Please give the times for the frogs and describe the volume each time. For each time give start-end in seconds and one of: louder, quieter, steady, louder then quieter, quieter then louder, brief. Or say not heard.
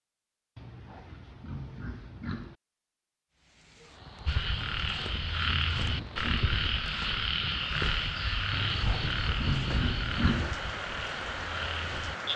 4.2-12.3 quieter.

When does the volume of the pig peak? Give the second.
10 s.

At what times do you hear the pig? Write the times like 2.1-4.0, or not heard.
0.6-2.5, 4.7-6.6, 8.5-10.6.